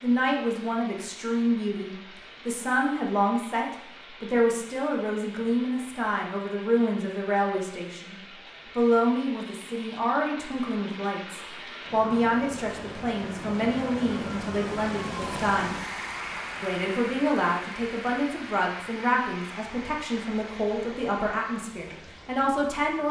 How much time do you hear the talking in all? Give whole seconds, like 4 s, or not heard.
22 s.